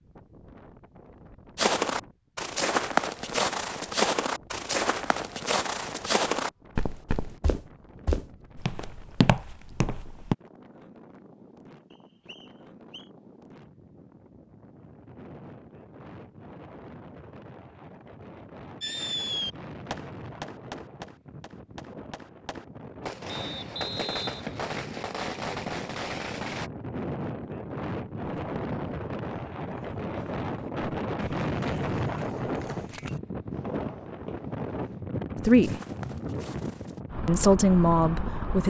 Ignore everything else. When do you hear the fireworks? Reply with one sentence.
The fireworks can be heard from 18.8 to 26.7 s.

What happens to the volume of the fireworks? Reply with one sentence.
The volume of the fireworks goes down, then up.